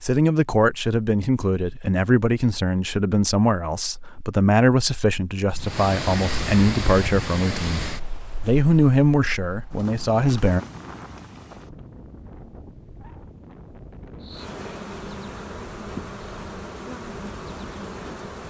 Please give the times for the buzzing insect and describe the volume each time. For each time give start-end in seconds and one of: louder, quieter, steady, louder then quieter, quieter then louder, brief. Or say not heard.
14.2-18.4 steady.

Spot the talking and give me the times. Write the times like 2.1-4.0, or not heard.
0.0-10.6.